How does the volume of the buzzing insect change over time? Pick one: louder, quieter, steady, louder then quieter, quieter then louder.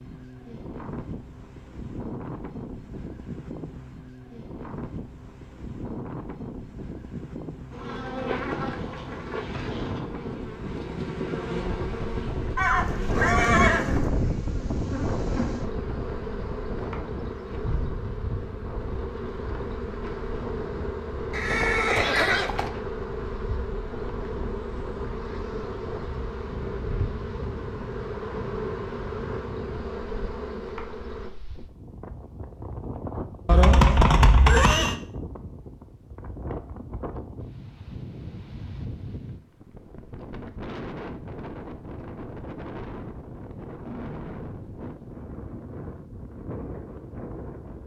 steady.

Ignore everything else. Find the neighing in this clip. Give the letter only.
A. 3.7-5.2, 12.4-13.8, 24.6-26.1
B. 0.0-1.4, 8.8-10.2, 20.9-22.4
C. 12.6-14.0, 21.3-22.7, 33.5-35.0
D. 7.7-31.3
C.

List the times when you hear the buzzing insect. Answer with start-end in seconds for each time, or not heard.
7.7-31.3.